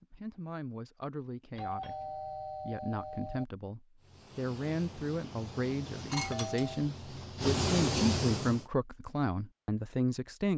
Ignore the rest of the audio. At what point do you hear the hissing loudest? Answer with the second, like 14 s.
8 s.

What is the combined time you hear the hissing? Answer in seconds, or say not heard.
5 s.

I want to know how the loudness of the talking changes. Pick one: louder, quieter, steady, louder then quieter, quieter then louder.
louder.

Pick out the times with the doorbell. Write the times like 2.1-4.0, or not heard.
1.6-3.5, 6.1-6.8.